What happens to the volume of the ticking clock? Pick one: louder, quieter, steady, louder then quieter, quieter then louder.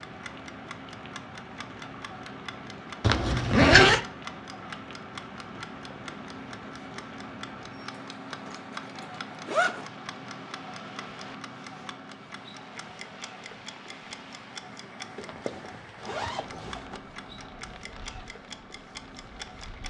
steady.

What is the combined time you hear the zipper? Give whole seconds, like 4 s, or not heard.
4 s.